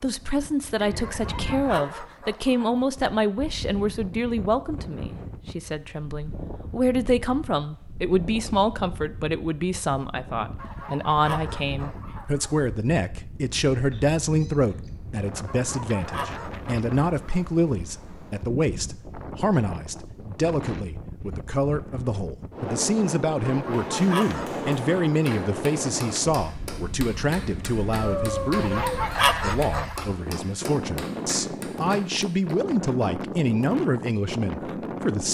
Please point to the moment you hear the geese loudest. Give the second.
29 s.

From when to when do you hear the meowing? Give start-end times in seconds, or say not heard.
0.8-1.6, 13.9-14.9, 27.4-29.4.